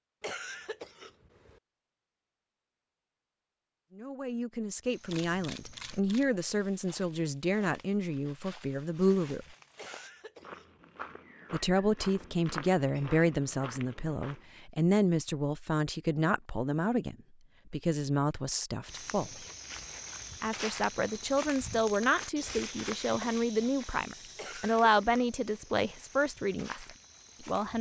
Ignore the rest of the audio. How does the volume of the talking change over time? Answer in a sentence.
The volume of the talking stays about the same.